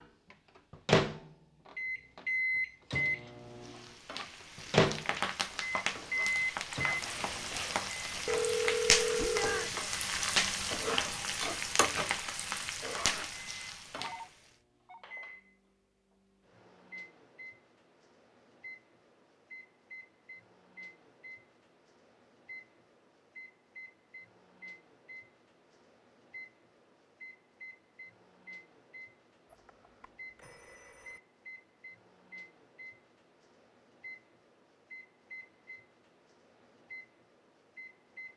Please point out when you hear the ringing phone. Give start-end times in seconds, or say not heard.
8.2-9.7, 13.9-15.0, 29.5-31.2.